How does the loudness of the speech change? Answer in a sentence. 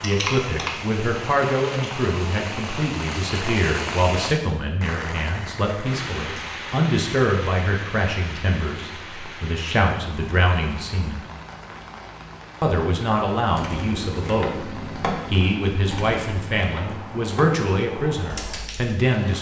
The volume of the speech stays about the same.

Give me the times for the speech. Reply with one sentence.
You can hear the speech from 0.0 to 11.2 s and from 12.6 to 19.3 s.